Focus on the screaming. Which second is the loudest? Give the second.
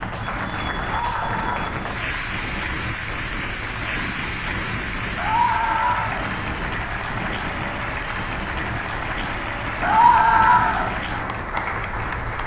10 s.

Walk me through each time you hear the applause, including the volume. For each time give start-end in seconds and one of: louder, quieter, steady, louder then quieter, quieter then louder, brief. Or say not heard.
0.0-12.4 steady.